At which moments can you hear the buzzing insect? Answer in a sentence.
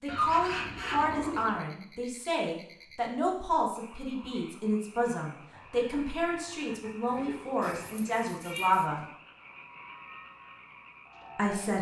The buzzing insect can't be heard in this clip.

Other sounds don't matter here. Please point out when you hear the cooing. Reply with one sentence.
The cooing can be heard from 0.1 to 1.6 s and from 7.0 to 9.1 s.